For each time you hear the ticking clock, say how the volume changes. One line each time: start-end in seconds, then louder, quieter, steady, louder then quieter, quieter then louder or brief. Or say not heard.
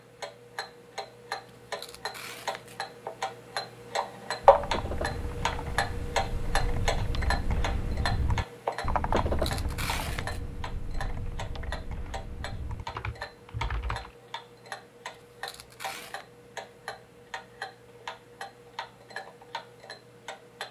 0.0-20.6 louder then quieter.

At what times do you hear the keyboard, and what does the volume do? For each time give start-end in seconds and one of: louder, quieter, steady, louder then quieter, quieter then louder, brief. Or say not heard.
4.4-14.2 louder then quieter.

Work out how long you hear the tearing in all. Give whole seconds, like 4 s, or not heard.
3 s.